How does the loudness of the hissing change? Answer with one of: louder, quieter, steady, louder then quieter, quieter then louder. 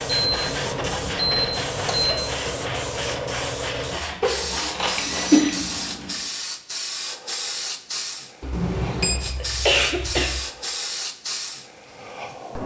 steady.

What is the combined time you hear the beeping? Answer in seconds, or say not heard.
4 s.